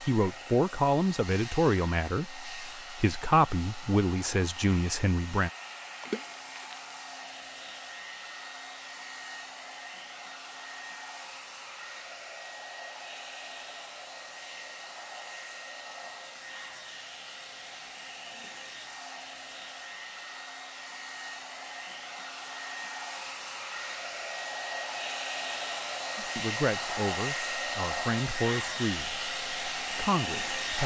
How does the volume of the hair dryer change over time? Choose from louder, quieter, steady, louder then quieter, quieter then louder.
louder.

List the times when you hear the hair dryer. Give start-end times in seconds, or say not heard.
0.0-30.8.